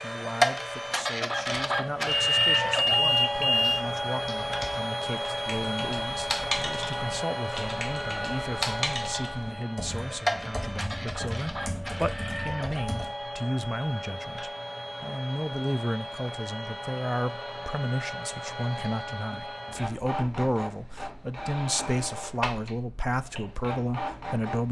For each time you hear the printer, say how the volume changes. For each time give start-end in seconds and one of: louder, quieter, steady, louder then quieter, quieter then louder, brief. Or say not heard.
0.0-24.6 quieter.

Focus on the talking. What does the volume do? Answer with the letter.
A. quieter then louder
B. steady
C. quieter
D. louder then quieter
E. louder
E.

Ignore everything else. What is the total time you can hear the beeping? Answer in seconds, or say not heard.
2 s.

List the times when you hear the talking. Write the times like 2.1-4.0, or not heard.
0.0-24.6.